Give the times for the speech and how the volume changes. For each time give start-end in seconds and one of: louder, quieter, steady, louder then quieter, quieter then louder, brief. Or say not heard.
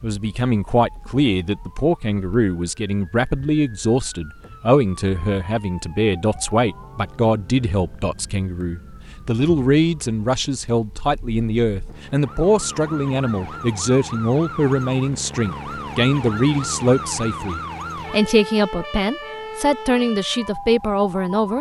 0.0-21.5 steady.